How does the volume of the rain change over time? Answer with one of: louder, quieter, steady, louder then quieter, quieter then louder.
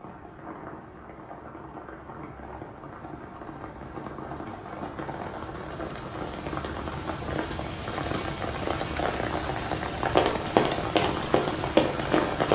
louder.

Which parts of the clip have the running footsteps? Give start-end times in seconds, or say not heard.
10.1-12.5.